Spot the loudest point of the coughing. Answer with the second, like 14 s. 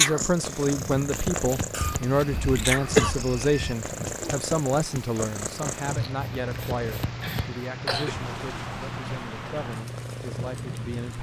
3 s.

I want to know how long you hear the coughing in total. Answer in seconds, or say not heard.
3 s.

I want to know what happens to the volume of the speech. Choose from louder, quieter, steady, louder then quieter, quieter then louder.
quieter.